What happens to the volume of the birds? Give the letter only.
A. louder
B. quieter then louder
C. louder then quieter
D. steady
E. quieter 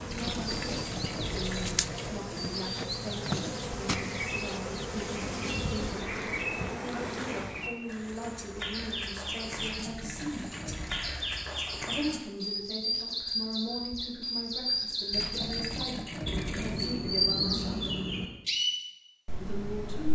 A.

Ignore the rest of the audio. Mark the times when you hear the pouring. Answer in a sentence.
You can hear the pouring from 0.1 to 2.1 s, from 9.6 to 11.2 s and from 15.1 to 17.0 s.